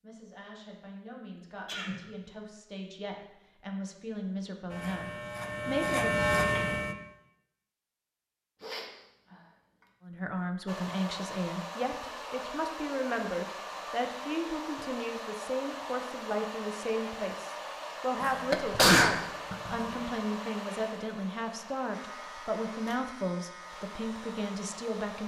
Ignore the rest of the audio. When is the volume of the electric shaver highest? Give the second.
6 s.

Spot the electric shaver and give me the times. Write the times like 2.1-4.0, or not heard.
4.7-7.0, 21.9-25.2.